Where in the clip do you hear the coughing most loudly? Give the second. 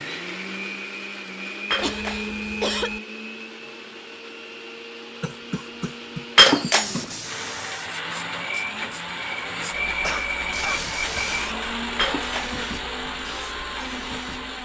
3 s.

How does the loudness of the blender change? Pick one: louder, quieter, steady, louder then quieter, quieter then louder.
quieter then louder.